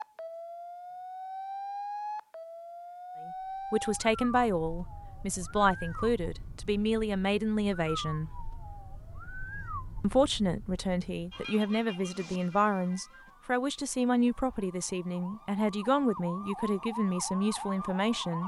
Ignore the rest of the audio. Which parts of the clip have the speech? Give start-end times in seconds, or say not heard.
3.7-8.3, 10.0-18.4.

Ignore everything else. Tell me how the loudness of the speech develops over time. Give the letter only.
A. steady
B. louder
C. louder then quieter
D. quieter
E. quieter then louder
A.